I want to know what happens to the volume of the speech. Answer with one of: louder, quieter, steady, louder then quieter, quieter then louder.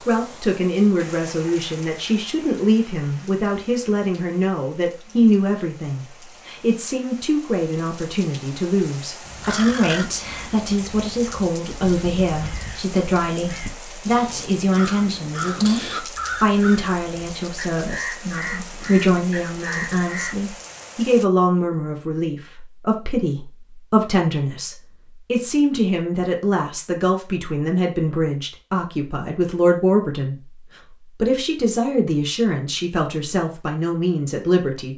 steady.